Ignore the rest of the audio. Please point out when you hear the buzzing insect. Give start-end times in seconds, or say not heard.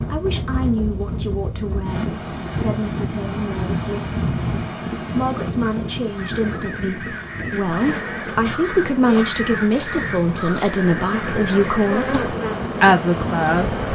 7.8-13.9.